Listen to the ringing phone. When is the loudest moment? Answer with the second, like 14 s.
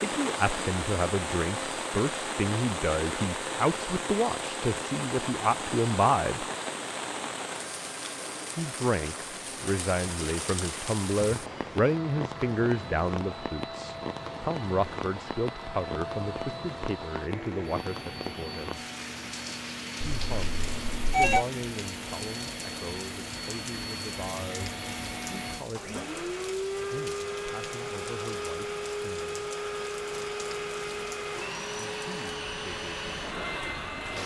21 s.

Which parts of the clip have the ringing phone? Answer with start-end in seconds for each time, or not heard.
20.0-21.4.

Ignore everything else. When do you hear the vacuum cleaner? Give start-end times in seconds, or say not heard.
0.0-34.2.